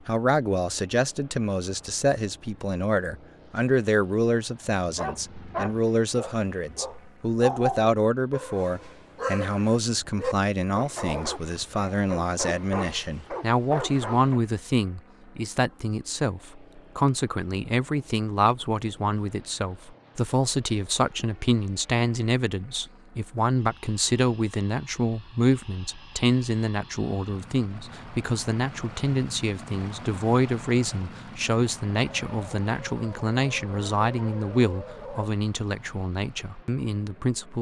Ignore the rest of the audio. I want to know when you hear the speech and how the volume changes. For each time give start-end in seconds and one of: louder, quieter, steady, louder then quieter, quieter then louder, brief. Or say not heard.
0.1-37.5 steady.